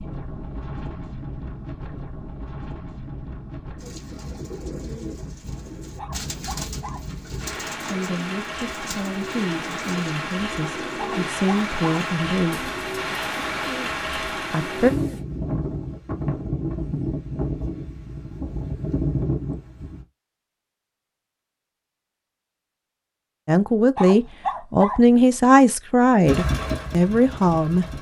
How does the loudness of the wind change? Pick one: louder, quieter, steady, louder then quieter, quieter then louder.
louder.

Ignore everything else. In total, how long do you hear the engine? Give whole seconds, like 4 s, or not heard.
2 s.